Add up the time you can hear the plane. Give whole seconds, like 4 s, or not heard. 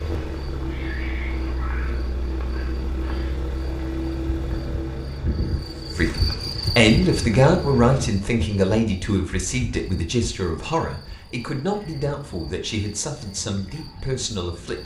8 s.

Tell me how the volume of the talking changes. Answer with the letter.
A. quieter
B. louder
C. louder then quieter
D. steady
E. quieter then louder
A.